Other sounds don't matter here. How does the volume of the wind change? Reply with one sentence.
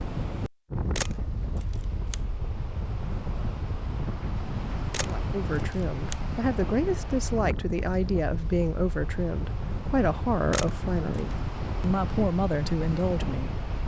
The volume of the wind stays about the same.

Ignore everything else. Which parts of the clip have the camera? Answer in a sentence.
The camera can be heard from 0.9 to 2.1 s, from 4.9 to 6.2 s and from 10.5 to 11.3 s.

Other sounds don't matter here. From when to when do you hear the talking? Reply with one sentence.
The talking can be heard from 5.0 to 13.8 s.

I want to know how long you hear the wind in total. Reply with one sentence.
The wind can be heard for 14 seconds in total.